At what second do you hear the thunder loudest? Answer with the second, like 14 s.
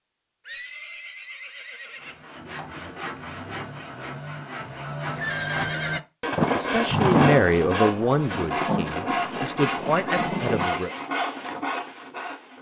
7 s.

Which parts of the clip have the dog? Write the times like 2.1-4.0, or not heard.
not heard.